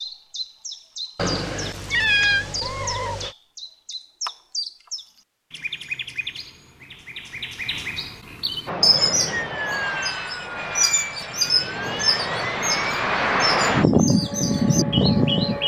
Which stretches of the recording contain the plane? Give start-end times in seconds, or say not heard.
8.7-15.6.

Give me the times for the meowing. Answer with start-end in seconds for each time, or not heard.
1.1-3.3.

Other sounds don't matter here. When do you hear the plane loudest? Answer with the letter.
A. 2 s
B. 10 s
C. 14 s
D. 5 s
C.